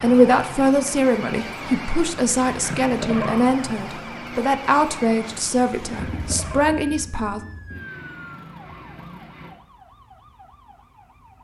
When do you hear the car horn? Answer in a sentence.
The car horn can't be heard in this clip.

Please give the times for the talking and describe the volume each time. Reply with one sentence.
You can hear the talking from 0.0 to 7.4 s, at a steady volume.